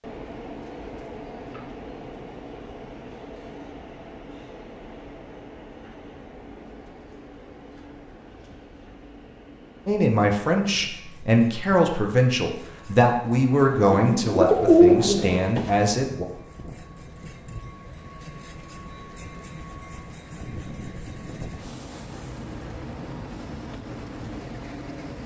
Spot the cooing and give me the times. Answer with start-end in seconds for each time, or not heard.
13.7-15.7.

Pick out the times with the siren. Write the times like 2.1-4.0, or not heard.
not heard.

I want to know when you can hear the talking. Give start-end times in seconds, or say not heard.
9.8-16.2.